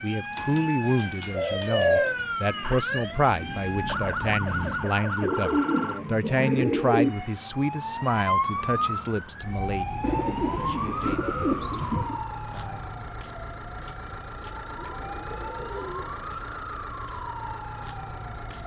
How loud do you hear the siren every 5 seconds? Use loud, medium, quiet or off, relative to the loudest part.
loud, loud, loud, medium.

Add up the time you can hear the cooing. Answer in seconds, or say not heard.
8 s.